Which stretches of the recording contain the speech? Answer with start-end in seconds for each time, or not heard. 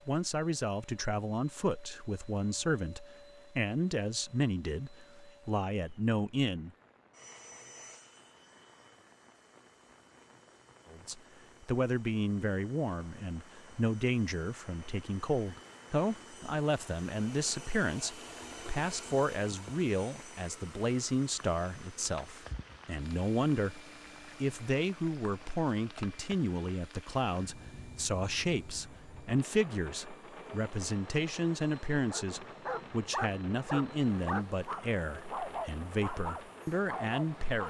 0.1-6.7, 10.9-23.8, 24.4-37.6.